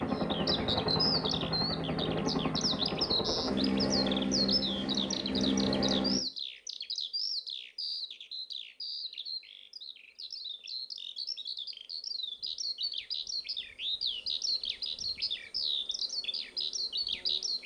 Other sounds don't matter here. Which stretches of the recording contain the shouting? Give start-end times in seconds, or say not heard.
not heard.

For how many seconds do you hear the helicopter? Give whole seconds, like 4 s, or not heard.
6 s.